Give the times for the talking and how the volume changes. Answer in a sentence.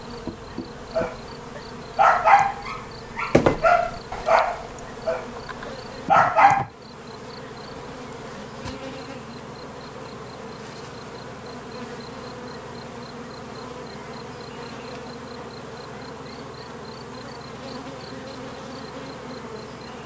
You can't hear the talking here.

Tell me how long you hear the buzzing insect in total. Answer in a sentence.
You can hear the buzzing insect for 20 seconds altogether.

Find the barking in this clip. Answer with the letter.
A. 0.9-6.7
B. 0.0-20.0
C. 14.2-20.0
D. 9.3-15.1
A.